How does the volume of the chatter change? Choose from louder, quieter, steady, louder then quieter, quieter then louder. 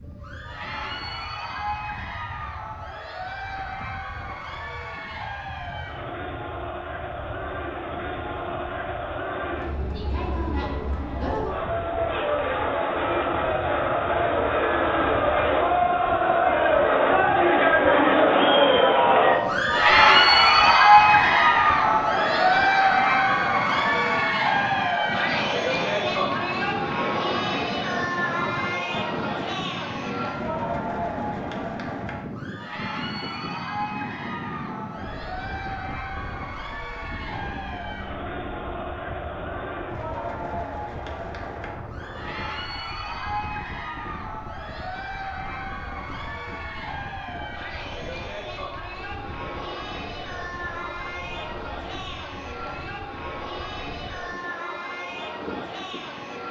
louder then quieter.